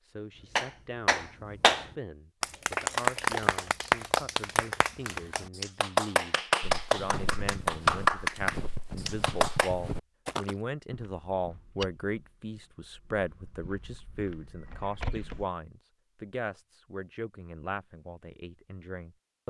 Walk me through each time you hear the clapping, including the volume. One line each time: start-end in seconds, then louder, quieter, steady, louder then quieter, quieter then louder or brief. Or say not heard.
0.6-9.7 quieter then louder.